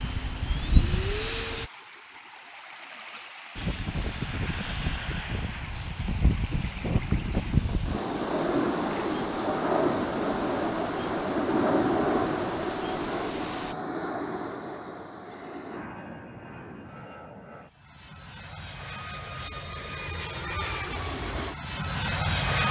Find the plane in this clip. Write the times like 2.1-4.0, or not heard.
0.0-1.7, 3.5-22.6.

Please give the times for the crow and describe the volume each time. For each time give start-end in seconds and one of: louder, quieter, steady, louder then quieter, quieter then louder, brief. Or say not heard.
not heard.